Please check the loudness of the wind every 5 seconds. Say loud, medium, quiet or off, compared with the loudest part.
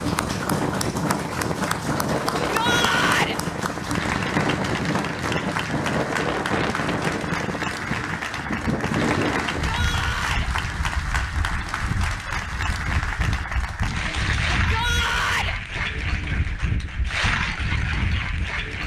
loud, loud, medium, medium.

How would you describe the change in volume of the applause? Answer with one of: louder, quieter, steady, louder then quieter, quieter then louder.
steady.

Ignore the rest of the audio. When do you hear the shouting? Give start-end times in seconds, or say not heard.
2.4-3.4, 9.6-10.5, 14.7-15.6.